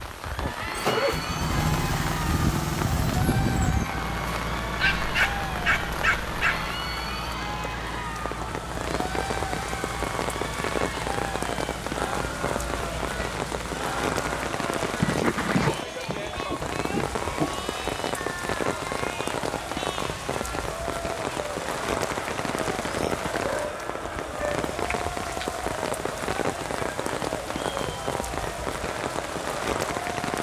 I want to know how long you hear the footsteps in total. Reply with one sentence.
You can't hear the footsteps here.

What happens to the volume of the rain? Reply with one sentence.
The volume of the rain stays about the same.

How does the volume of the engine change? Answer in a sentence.
The loudness of the engine goes down.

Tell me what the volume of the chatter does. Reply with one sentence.
The volume of the chatter stays about the same.